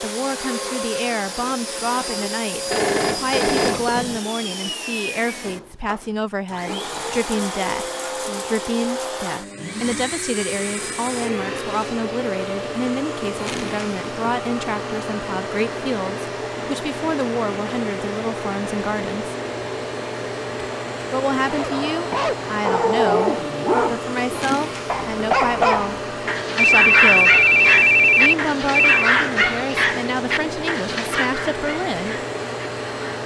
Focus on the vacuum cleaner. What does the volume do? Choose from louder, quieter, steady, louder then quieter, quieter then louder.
steady.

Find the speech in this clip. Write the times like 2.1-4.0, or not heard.
0.0-19.4, 21.1-27.4, 28.1-32.2.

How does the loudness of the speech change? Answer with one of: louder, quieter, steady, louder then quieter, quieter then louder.
steady.